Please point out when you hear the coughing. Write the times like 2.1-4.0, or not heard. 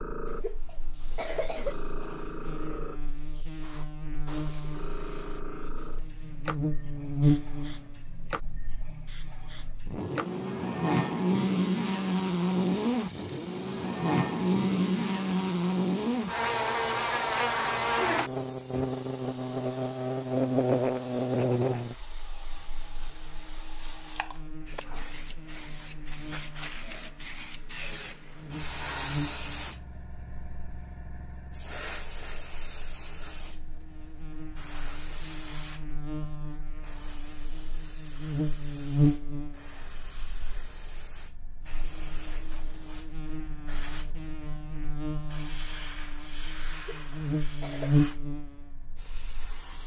0.2-1.8, 46.7-48.0.